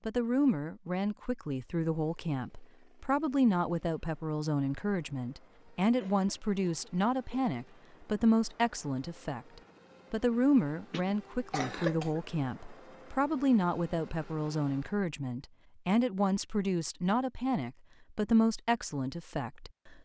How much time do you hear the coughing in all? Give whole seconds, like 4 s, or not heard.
3 s.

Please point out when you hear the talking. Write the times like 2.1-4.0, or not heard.
0.1-9.4, 10.1-19.9.